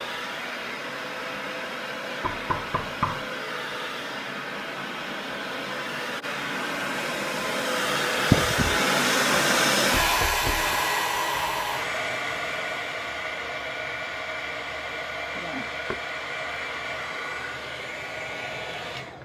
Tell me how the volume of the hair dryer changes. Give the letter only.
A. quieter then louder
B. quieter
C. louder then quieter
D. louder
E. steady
C.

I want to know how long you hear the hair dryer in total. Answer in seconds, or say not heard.
19 s.